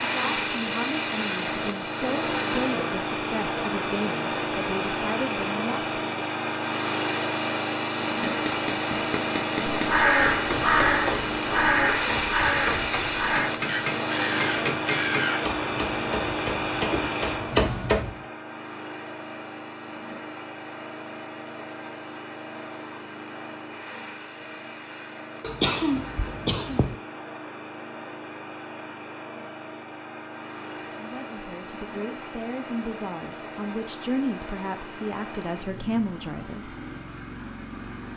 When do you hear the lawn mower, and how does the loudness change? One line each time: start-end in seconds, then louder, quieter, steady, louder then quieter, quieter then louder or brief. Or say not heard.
0.0-38.1 quieter.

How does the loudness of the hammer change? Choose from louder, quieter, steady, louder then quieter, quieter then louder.
louder.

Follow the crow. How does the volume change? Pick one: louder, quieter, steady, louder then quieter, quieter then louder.
quieter.